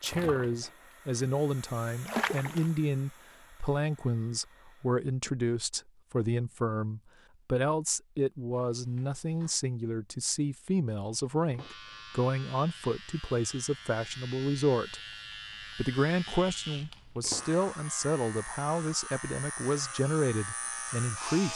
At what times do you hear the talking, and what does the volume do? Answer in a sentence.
The talking can be heard from 0.0 to 15.0 s, at a steady volume; and from 15.8 to 21.5 s, at a steady volume.